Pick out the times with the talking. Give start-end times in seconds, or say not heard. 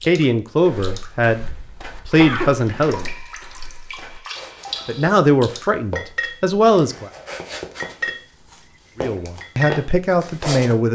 0.1-3.0, 4.8-7.1, 9.0-10.8.